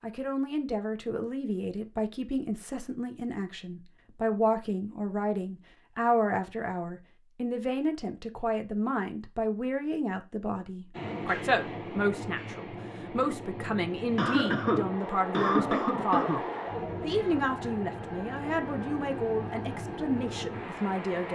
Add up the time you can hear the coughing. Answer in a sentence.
You can hear the coughing for 2 seconds altogether.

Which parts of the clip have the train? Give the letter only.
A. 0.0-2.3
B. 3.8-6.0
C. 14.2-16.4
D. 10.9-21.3
D.